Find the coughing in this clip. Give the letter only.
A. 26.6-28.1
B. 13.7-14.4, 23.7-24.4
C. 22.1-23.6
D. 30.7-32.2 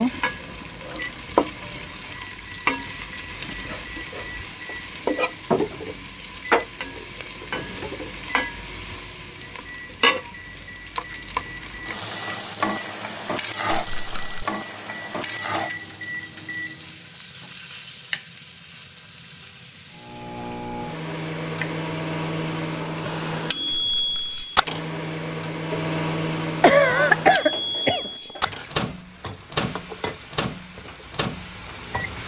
A.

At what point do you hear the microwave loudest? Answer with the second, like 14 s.
24 s.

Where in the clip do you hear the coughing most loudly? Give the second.
27 s.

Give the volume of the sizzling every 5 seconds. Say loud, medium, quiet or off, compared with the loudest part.
loud, loud, loud, medium, quiet, medium, medium.